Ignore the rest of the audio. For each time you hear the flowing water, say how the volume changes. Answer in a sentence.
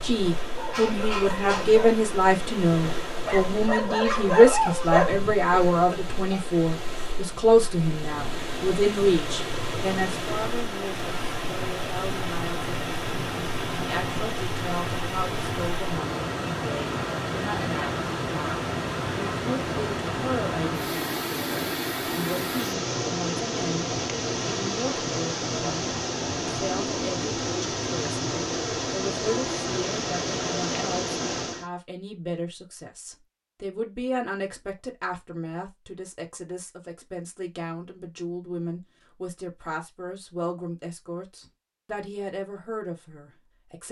You can hear the flowing water from 0.0 to 31.6 s, getting louder.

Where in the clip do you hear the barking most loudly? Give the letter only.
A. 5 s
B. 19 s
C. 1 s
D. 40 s
A.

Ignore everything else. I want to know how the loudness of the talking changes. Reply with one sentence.
The loudness of the talking goes down.